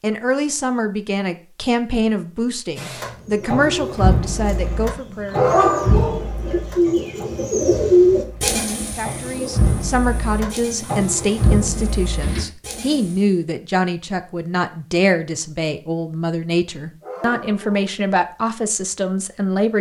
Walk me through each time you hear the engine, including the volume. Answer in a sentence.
You can hear the engine from 2.8 to 12.4 s, getting quieter then louder.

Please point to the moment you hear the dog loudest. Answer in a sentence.
The loudest moment of the dog is at 6 seconds.